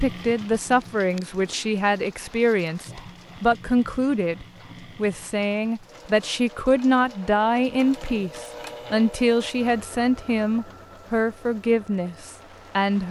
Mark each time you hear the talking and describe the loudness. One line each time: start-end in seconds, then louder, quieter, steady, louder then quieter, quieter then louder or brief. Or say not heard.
0.0-13.0 steady.